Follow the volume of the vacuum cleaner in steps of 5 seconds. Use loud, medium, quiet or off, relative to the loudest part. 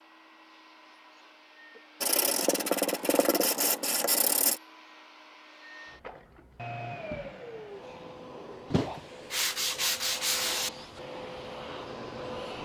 quiet, loud, loud.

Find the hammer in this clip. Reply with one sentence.
You can't hear the hammer here.